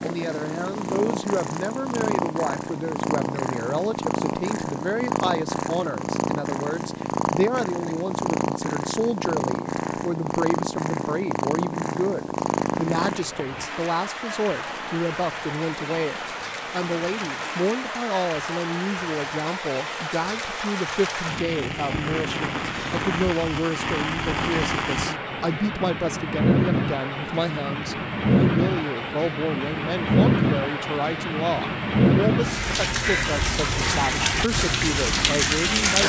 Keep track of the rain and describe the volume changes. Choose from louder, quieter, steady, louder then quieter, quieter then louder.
louder.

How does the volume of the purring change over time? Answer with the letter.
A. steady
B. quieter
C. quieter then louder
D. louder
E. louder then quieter
B.